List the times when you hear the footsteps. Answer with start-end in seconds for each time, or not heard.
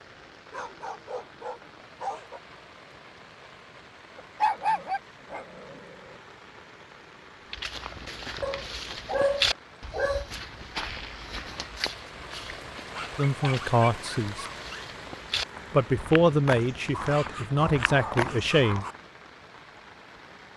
7.5-19.0.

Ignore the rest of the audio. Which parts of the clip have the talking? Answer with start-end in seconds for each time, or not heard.
13.2-14.4, 15.7-18.9.